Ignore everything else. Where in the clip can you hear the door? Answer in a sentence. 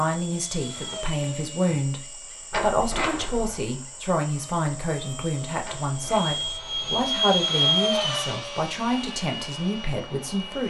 You can hear the door from 2.5 to 3.6 s and from 5.6 to 7.2 s.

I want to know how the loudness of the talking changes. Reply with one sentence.
The volume of the talking stays about the same.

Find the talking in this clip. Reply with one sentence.
You can hear the talking from 0.0 to 10.6 s.